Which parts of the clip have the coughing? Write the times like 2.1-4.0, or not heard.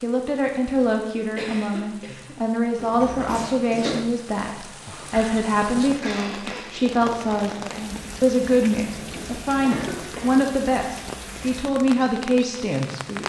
0.8-2.4, 5.1-6.8, 9.7-10.6.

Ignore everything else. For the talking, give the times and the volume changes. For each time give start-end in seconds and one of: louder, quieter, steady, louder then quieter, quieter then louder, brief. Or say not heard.
0.0-13.2 steady.